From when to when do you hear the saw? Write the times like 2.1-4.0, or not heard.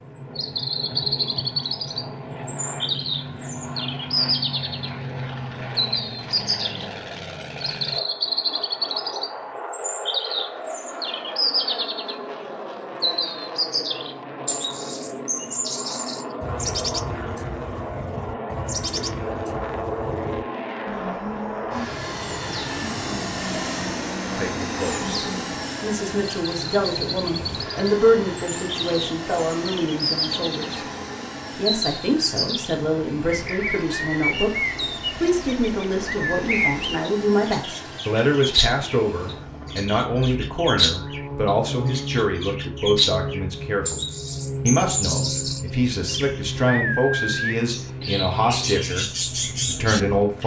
not heard.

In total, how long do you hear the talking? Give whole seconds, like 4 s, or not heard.
24 s.